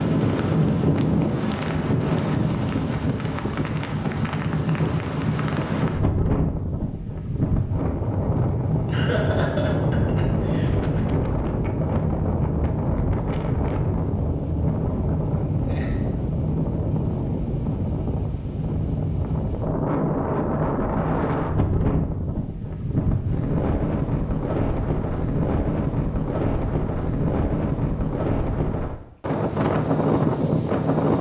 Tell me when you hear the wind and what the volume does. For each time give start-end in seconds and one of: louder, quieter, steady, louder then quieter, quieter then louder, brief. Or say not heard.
0.0-31.1 steady.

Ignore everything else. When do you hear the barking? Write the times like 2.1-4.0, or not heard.
not heard.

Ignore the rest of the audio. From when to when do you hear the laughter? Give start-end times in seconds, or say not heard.
8.8-11.1, 15.7-16.2.